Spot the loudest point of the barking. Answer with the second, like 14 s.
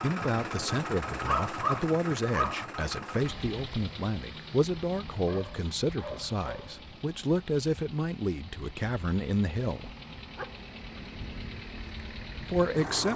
2 s.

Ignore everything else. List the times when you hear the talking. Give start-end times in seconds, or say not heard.
0.0-9.9, 12.3-13.1.